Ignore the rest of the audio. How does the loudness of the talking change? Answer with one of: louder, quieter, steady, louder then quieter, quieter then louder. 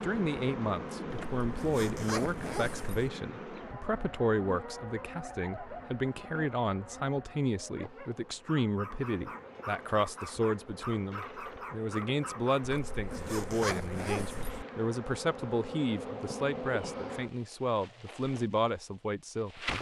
steady.